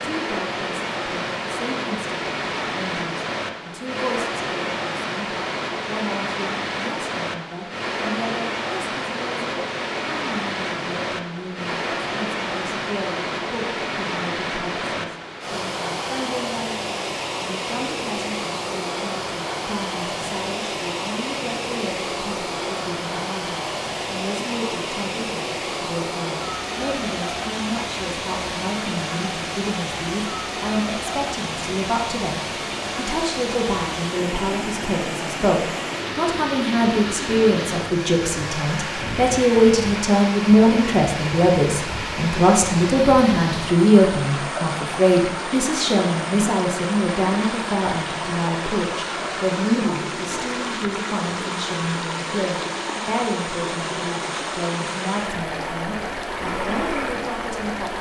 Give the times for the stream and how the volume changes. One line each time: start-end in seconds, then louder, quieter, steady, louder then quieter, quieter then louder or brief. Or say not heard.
0.0-57.9 steady.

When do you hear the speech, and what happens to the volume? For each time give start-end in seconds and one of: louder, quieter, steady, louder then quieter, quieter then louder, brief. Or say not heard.
0.0-57.9 louder then quieter.